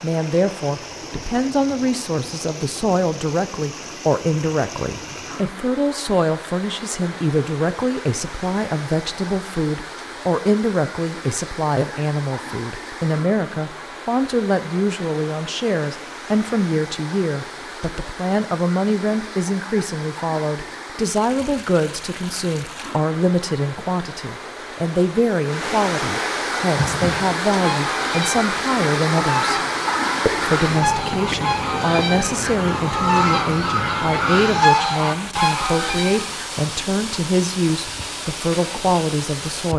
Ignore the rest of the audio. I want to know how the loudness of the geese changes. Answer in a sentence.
The loudness of the geese goes up.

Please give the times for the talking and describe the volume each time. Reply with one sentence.
You can hear the talking from 0.0 to 29.6 s, at a steady volume; and from 30.2 to 39.7 s, at a steady volume.